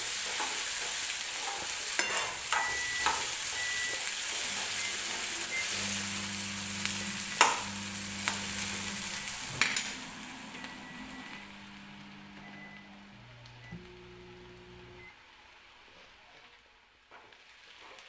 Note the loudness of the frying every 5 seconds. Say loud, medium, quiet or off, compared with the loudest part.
loud, loud, quiet, quiet.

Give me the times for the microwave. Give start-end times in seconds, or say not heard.
2.0-15.2.